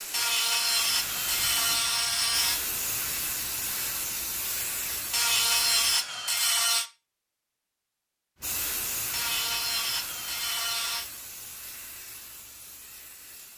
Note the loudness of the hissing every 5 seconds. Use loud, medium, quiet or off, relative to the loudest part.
loud, loud, medium.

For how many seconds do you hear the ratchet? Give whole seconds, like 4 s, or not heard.
6 s.